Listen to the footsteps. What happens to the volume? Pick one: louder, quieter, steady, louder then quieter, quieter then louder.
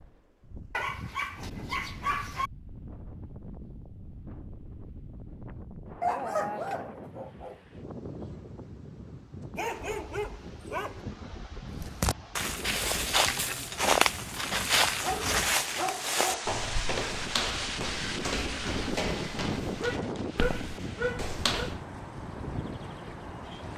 quieter.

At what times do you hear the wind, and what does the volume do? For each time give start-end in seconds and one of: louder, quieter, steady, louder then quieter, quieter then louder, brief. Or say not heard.
0.0-23.7 louder.